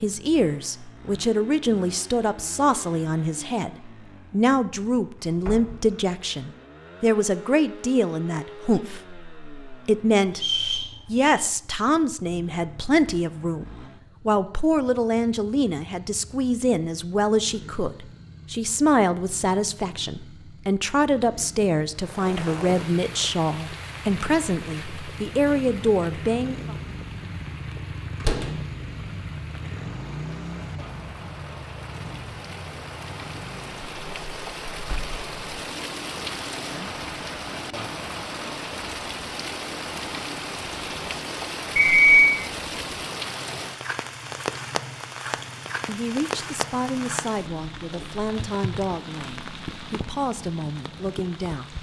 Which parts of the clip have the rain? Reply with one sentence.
The rain can be heard from 21.9 to 51.7 s.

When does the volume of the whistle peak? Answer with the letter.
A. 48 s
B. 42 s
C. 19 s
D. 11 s
B.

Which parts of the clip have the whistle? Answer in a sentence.
The whistle can be heard from 10.3 to 11.3 s and from 41.8 to 42.4 s.